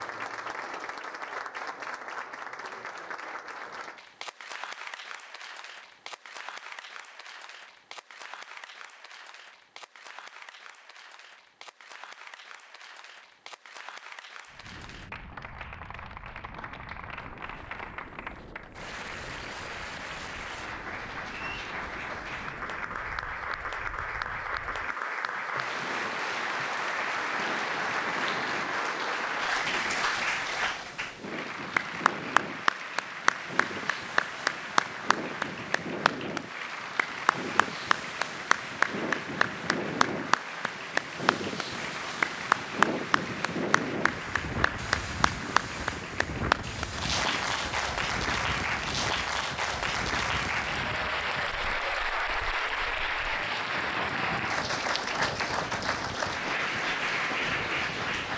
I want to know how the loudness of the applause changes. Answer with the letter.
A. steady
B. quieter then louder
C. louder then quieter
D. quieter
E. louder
E.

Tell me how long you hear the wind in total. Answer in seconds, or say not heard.
44 s.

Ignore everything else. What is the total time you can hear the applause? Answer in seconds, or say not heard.
58 s.